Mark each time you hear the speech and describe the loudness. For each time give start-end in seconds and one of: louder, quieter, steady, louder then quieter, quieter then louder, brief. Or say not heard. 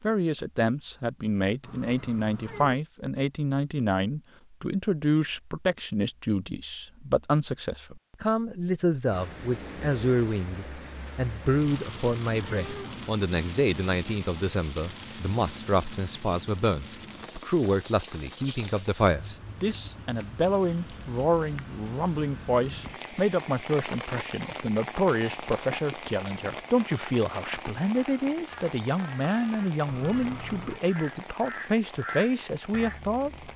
0.0-33.5 steady.